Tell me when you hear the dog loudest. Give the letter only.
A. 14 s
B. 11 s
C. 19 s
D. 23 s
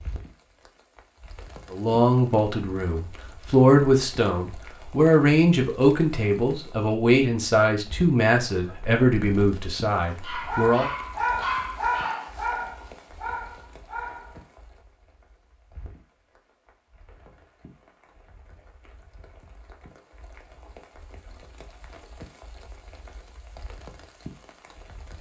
B.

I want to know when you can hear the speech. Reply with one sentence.
The speech can be heard from 1.7 to 10.9 s.